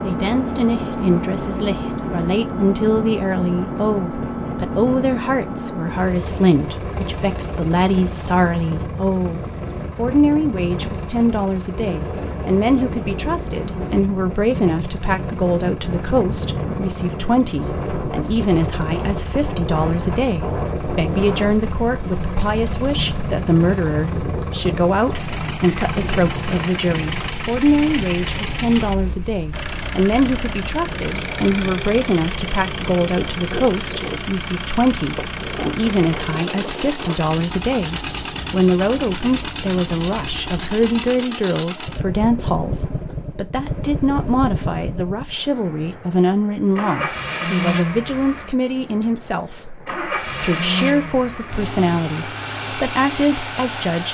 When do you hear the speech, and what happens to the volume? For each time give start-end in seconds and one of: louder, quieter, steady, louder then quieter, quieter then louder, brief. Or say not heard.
0.0-54.0 steady.